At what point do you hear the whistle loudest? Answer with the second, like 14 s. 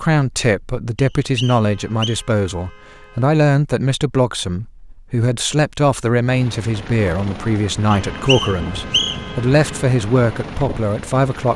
9 s.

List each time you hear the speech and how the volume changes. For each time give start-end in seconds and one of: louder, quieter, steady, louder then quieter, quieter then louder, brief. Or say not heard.
0.0-11.5 steady.